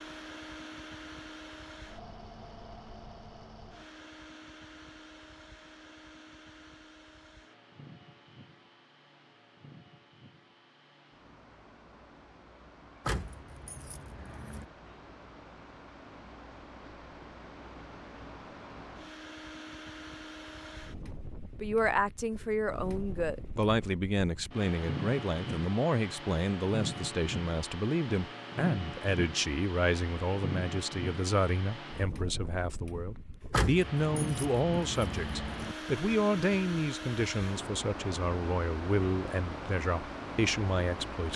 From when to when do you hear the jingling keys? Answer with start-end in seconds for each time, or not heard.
13.1-14.7, 33.5-35.8.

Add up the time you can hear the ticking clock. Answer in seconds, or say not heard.
not heard.